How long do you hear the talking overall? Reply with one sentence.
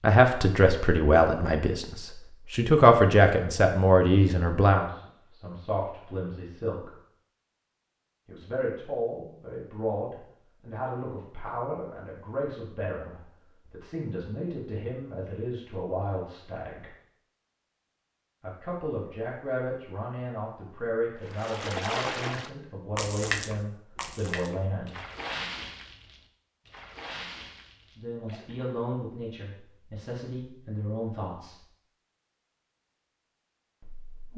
You can hear the talking for 26 seconds altogether.